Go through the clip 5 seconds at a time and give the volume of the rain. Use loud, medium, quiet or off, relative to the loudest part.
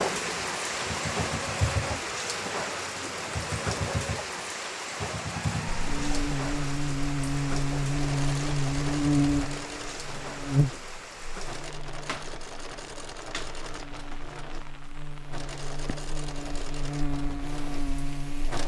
loud, medium, medium, quiet.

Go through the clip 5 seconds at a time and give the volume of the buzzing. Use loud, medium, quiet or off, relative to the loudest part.
off, loud, medium, medium.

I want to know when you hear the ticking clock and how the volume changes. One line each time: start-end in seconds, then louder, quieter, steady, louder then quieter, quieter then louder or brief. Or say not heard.
not heard.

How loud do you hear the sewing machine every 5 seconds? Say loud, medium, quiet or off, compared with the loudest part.
loud, loud, medium, medium.